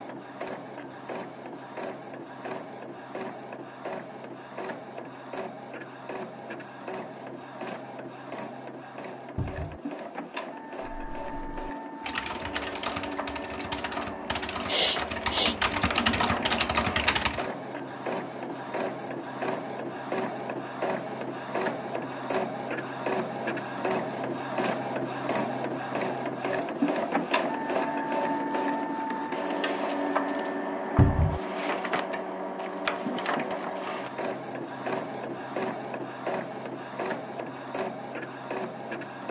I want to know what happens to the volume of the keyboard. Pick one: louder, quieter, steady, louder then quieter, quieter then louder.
louder.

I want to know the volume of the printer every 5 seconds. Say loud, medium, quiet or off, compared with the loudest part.
medium, medium, medium, medium, loud, loud, loud, medium.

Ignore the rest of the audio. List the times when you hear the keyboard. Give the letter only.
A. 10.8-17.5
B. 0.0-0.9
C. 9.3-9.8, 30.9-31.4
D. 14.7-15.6
A.